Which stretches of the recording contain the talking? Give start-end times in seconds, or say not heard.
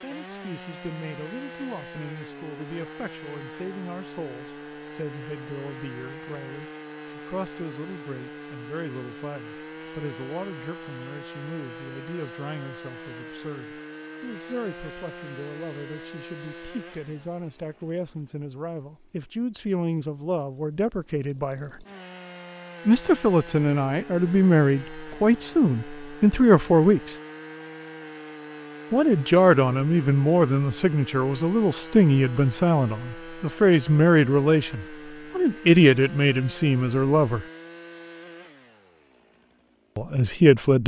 0.0-21.9, 22.9-27.1, 28.9-37.5, 40.0-40.8.